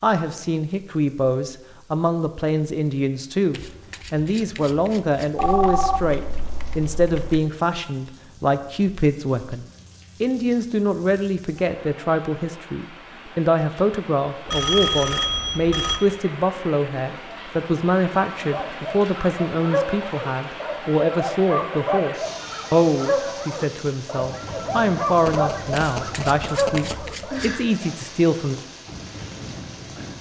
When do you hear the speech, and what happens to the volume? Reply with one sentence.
You can hear the speech from 0.0 to 28.6 s, at a steady volume.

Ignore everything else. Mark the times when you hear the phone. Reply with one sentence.
The phone can be heard from 5.3 to 7.4 s, from 14.4 to 16.0 s and from 25.2 to 27.0 s.